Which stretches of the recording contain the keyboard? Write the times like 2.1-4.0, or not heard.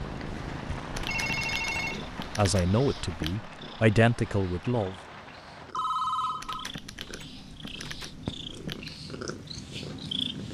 0.9-3.4, 6.4-9.0.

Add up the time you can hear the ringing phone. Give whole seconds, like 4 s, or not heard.
2 s.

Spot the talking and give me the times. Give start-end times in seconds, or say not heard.
2.4-5.0.